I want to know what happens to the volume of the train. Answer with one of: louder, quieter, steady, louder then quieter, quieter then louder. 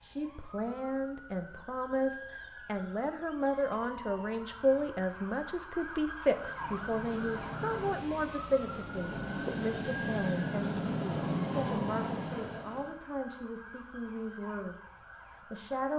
louder.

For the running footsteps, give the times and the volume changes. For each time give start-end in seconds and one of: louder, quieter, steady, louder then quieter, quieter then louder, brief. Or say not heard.
not heard.